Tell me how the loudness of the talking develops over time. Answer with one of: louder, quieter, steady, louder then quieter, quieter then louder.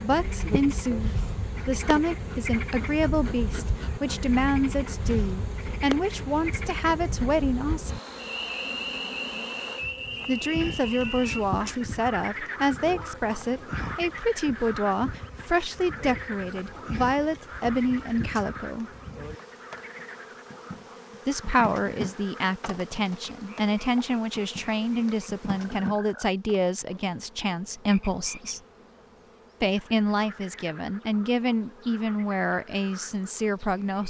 steady.